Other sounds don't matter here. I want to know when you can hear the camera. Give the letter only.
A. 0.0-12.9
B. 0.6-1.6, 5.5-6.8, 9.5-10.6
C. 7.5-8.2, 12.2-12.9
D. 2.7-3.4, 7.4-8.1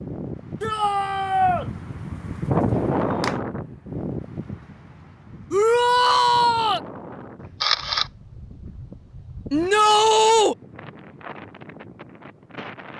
D.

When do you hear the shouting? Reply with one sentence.
You can hear the shouting from 0.6 to 1.6 s, from 5.5 to 6.8 s and from 9.5 to 10.6 s.